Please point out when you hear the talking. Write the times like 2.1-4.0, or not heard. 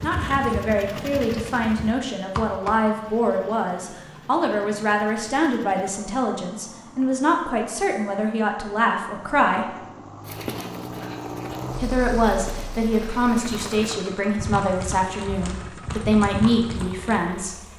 0.0-9.8, 11.8-17.6.